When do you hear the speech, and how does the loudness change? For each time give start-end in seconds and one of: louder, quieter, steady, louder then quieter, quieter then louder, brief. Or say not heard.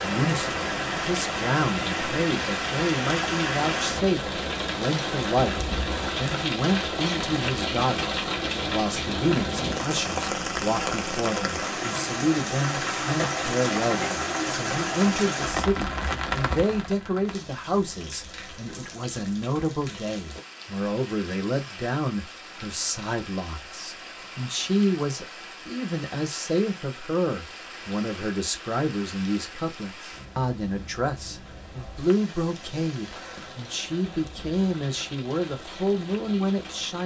0.0-37.0 steady.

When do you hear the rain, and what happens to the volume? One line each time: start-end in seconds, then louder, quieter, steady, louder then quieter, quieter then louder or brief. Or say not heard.
0.0-37.0 quieter.